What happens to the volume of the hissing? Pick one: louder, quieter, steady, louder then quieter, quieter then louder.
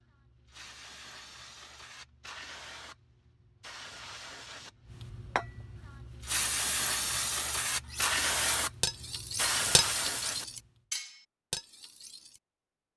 louder.